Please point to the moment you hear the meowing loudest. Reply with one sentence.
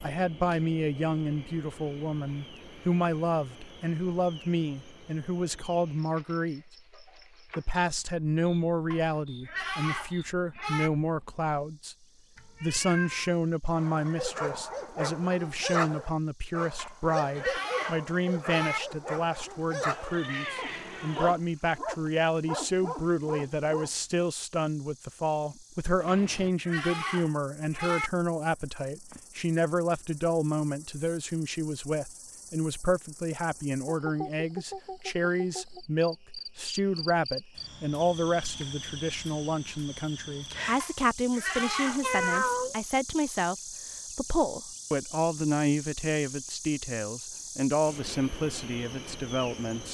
The loudest moment of the meowing is at 42 seconds.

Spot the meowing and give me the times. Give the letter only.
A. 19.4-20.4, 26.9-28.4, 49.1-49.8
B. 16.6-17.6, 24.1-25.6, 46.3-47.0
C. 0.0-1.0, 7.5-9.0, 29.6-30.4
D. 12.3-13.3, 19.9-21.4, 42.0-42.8
D.